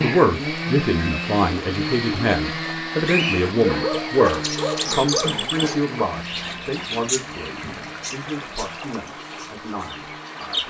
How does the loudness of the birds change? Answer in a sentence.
The loudness of the birds goes up, then down.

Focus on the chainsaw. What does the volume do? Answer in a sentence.
The loudness of the chainsaw goes down.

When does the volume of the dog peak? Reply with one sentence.
The volume of the dog peaks at 4 seconds.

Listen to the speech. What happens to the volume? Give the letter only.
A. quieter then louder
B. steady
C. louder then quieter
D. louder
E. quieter
E.